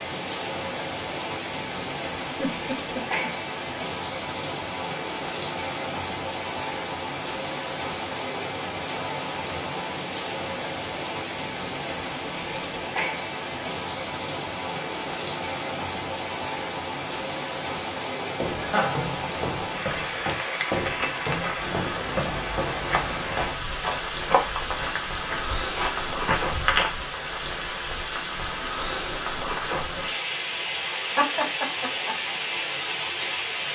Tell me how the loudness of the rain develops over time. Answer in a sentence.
The volume of the rain stays about the same.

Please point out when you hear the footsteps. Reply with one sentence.
The footsteps can be heard from 18.4 to 26.9 s.